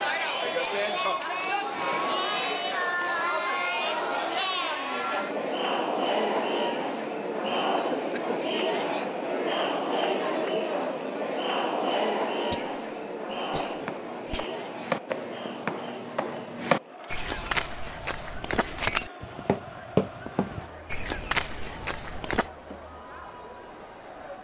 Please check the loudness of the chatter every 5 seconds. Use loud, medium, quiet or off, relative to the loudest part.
loud, loud, loud, quiet, quiet.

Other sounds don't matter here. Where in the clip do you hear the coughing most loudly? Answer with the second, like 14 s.
8 s.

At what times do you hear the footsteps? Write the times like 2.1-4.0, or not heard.
13.7-22.5.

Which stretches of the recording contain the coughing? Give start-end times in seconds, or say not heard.
7.8-8.4, 12.5-14.4.